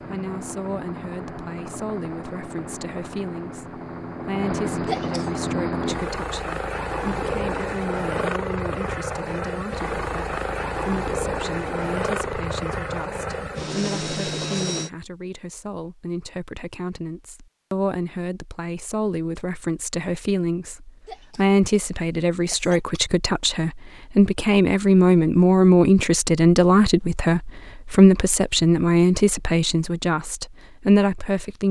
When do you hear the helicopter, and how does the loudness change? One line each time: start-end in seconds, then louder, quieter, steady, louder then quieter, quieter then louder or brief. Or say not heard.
0.0-14.9 louder.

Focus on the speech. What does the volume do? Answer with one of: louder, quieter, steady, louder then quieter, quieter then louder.
louder.